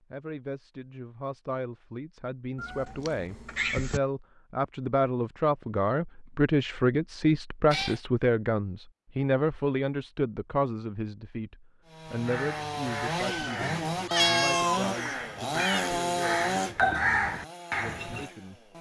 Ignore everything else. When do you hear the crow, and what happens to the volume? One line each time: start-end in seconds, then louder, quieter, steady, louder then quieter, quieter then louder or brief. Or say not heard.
12.1-18.3 louder.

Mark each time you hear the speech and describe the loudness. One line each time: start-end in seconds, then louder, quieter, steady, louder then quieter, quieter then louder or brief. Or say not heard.
0.0-18.7 louder then quieter.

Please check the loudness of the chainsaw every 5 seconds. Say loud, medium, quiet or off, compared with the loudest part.
off, off, loud, loud.